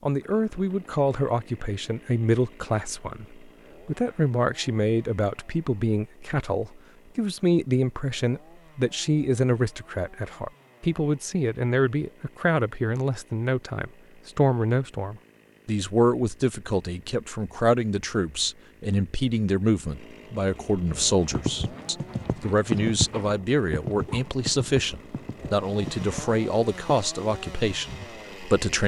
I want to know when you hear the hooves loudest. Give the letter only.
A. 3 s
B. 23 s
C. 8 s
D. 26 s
B.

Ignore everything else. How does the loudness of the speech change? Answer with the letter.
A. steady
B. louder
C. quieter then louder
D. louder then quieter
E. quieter
A.